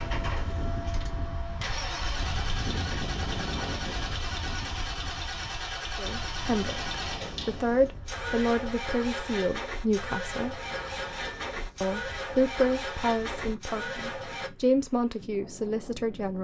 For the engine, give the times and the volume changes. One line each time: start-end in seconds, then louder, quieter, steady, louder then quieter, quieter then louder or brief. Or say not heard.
0.0-14.5 steady.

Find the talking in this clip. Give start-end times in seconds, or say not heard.
6.0-10.6, 11.8-16.3.